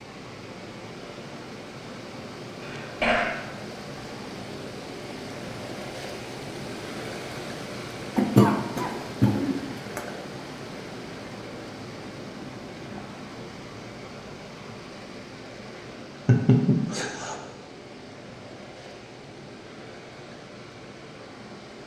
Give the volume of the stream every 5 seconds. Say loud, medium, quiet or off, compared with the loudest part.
loud, loud, loud, medium, medium.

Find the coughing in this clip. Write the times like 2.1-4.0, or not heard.
2.6-3.4, 8.2-10.1, 16.2-17.4.